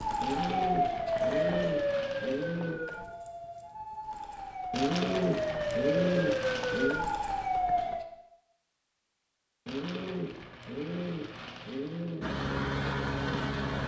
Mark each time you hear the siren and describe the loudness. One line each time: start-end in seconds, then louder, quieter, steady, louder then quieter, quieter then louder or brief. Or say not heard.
0.0-8.1 quieter then louder.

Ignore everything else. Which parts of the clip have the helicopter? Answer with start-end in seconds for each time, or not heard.
12.2-13.8.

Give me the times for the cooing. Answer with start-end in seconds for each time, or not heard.
0.2-2.8, 4.7-7.1, 9.7-12.2.